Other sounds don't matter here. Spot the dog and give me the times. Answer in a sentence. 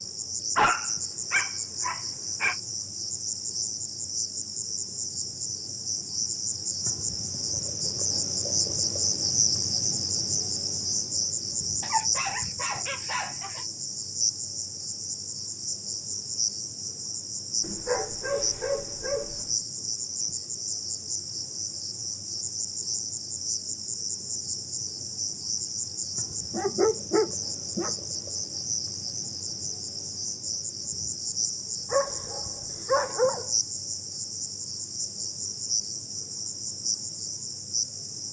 You can hear the dog from 0.6 to 2.5 s, from 11.8 to 13.7 s, from 17.6 to 19.4 s, from 26.5 to 27.9 s and from 31.9 to 33.5 s.